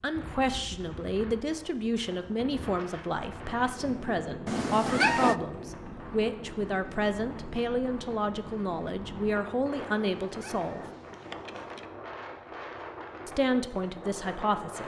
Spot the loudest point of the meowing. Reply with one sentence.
The volume of the meowing peaks at 5 seconds.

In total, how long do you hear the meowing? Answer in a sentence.
You can hear the meowing for 3 seconds altogether.